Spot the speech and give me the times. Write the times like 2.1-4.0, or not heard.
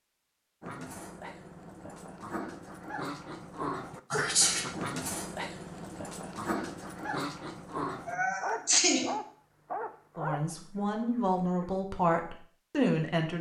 10.2-13.3.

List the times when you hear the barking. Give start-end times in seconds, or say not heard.
0.6-11.7.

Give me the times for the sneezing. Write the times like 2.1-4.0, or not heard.
4.1-4.8, 8.1-9.2.